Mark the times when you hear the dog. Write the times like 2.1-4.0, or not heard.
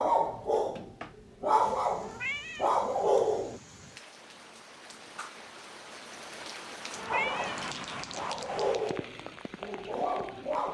0.0-3.6, 7.0-10.6.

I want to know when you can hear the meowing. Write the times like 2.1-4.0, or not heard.
2.0-3.2, 6.9-7.6.